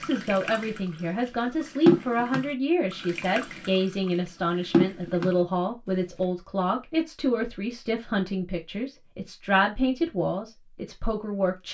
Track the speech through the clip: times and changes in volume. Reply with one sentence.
The speech can be heard from 0.0 to 11.6 s, at a steady volume.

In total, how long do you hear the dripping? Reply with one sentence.
You can hear the dripping for 6 seconds altogether.